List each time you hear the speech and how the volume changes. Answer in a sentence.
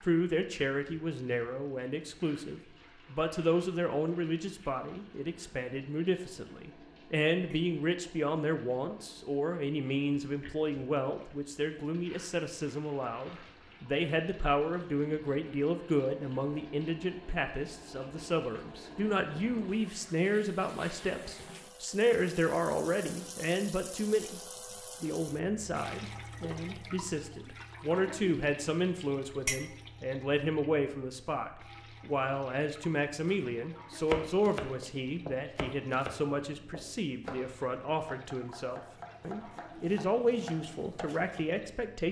You can hear the speech from 0.0 to 24.4 s, at a steady volume; and from 25.0 to 42.0 s, at a steady volume.